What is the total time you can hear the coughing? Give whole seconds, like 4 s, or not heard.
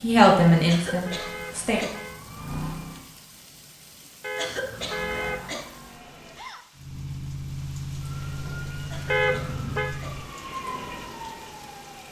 4 s.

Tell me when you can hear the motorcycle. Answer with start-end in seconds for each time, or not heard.
6.8-10.3.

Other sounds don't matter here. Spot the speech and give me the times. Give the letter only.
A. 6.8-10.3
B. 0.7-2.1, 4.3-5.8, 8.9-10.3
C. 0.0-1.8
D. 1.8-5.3
C.